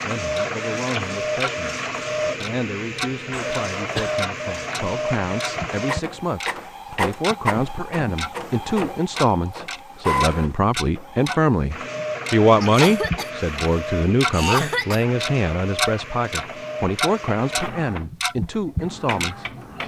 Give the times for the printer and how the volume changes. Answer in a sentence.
You can hear the printer from 0.0 to 19.8 s, getting quieter.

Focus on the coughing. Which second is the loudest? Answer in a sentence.
The loudest moment of the coughing is at 15 seconds.